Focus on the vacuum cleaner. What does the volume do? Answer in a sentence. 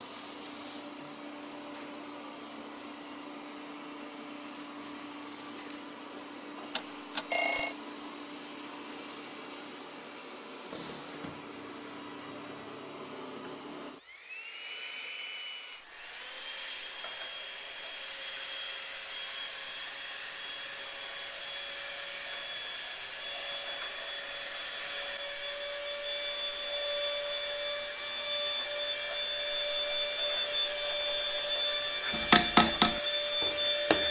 The loudness of the vacuum cleaner goes up.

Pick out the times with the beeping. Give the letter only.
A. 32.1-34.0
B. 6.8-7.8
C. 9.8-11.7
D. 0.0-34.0
B.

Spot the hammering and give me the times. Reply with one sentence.
You can hear the hammering from 32.1 to 34.0 s.